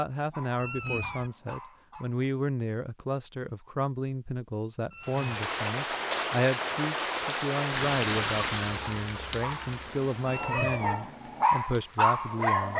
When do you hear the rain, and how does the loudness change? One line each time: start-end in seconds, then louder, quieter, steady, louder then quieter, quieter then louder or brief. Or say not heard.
5.0-12.7 quieter.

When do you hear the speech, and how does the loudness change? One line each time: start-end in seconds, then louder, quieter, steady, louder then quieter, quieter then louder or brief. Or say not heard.
0.0-12.7 steady.